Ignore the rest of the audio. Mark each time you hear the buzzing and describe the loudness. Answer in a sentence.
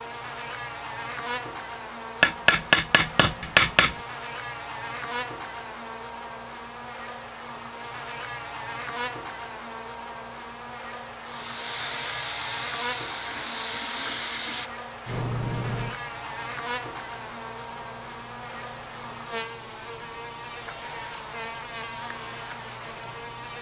You can hear the buzzing from 0.0 to 23.5 s, at a steady volume.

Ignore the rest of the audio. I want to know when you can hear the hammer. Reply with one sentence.
The hammer can be heard from 2.2 to 4.0 s.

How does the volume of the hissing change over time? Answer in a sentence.
The loudness of the hissing goes down.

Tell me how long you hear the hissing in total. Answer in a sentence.
You can hear the hissing for 12 seconds altogether.